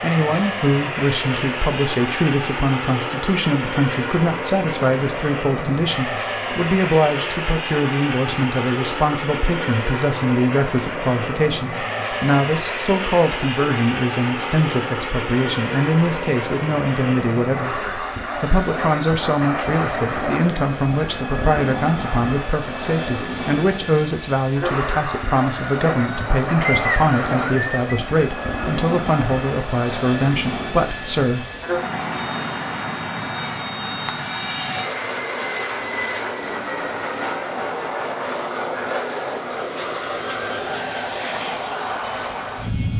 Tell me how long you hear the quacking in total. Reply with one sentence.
You can't hear the quacking here.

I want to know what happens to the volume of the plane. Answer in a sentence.
The volume of the plane stays about the same.